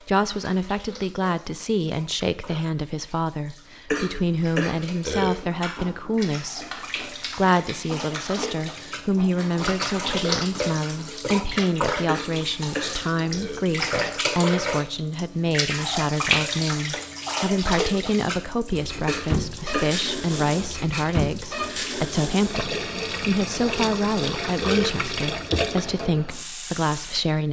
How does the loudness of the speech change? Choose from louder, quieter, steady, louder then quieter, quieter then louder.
steady.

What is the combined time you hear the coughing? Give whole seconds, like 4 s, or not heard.
3 s.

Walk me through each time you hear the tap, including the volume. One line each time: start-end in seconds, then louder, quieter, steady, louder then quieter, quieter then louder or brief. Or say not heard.
0.0-27.2 louder.